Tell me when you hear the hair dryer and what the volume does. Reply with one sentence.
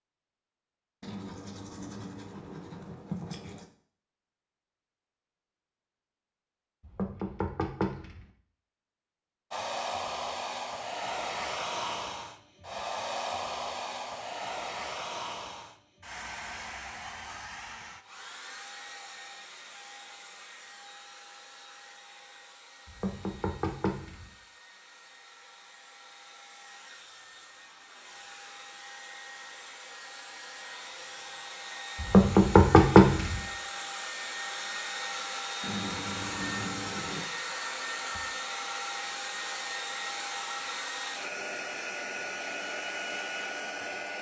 You can hear the hair dryer from 9.5 to 44.1 s, getting quieter then louder.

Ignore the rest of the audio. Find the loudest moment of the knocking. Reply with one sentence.
The loudest moment of the knocking is at 33 seconds.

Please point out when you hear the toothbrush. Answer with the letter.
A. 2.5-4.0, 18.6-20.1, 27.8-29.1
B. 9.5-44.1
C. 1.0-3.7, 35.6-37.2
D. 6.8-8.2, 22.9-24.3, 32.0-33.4
C.